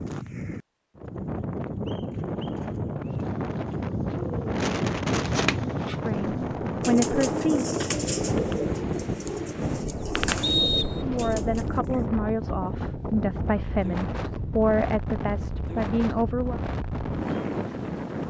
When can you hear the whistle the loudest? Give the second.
11 s.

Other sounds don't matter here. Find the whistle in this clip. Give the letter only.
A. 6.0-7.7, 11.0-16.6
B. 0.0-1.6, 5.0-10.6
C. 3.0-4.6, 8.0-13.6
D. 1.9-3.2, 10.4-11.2
D.